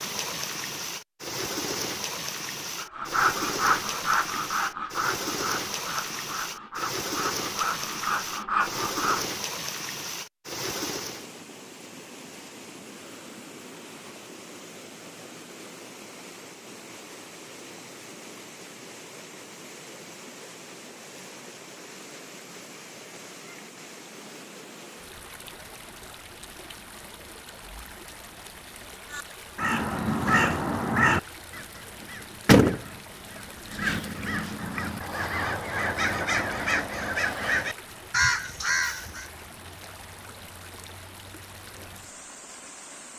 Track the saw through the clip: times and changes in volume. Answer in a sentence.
The saw can be heard from 2.8 to 9.2 s, getting quieter then louder.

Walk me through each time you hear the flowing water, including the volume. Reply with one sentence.
You can hear the flowing water from 0.0 to 43.1 s, getting quieter.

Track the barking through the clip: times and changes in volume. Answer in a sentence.
You can't hear the barking here.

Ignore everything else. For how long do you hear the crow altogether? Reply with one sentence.
You can hear the crow for 10 seconds altogether.